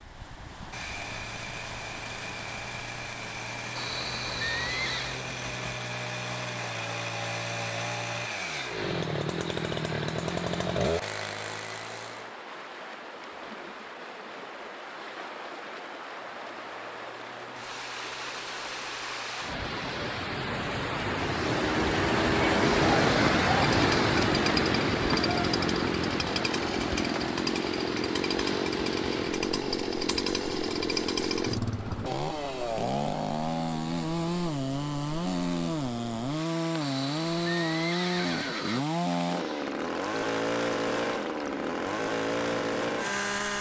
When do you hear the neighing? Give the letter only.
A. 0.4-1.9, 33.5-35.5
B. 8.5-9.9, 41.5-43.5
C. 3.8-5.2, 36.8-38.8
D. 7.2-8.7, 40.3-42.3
C.